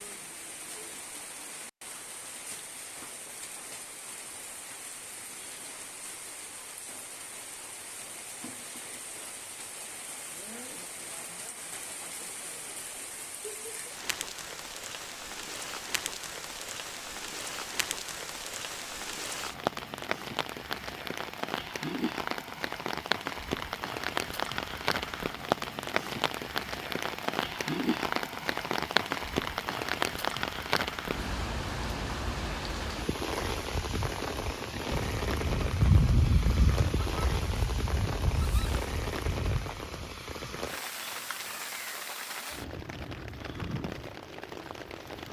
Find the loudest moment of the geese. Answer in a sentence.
The loudest moment of the geese is at 36 seconds.